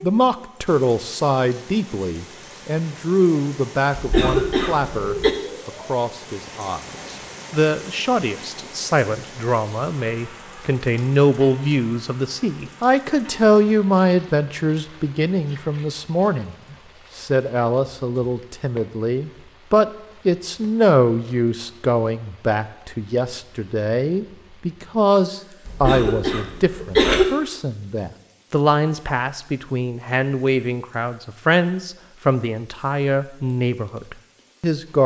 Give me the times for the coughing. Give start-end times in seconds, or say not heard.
4.0-5.3, 25.6-27.2.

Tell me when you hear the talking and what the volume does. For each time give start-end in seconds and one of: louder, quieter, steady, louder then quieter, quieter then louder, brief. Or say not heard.
0.0-35.0 steady.